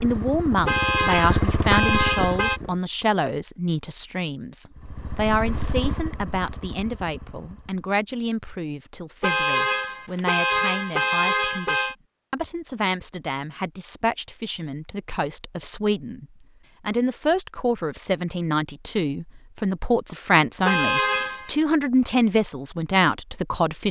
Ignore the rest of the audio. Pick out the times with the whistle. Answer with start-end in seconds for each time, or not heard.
not heard.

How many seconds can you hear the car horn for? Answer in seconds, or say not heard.
6 s.